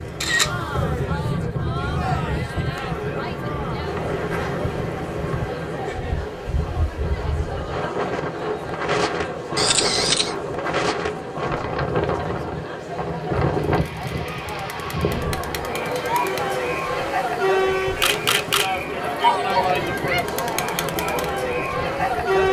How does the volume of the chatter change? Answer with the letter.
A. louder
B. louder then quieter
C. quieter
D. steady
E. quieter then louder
A.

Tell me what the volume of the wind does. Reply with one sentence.
The volume of the wind goes down.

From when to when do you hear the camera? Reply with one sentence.
The camera can be heard from 0.2 to 1.1 s, from 9.6 to 10.3 s and from 18.0 to 18.7 s.